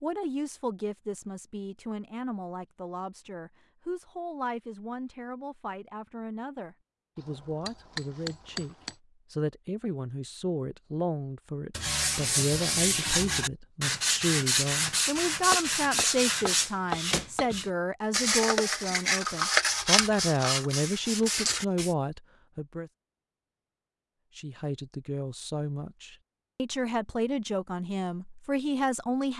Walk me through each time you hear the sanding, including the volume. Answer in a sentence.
You can hear the sanding from 11.7 to 21.9 s, at a steady volume.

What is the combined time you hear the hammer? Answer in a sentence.
You can hear the hammer for 4 seconds altogether.